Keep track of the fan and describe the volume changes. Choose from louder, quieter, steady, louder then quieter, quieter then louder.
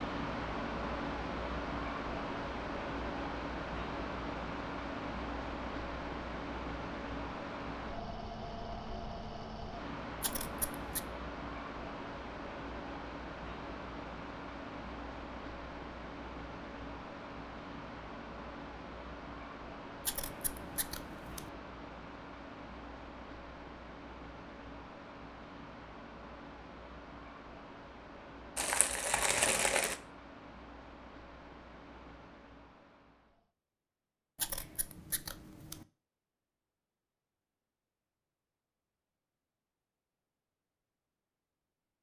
quieter.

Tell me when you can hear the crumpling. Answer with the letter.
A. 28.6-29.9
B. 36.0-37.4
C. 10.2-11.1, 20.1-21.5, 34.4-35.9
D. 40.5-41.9
A.